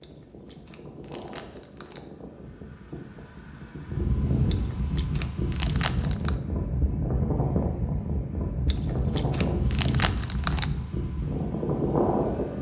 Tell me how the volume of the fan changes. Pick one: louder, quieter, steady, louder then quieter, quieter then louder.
louder.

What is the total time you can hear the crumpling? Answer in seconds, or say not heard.
6 s.